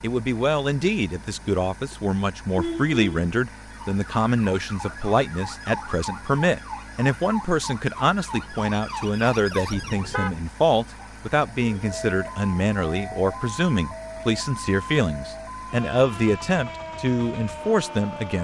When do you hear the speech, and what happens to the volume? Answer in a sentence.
The speech can be heard from 0.0 to 18.3 s, at a steady volume.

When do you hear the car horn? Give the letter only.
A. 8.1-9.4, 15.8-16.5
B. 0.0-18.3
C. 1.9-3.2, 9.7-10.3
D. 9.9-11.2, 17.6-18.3
C.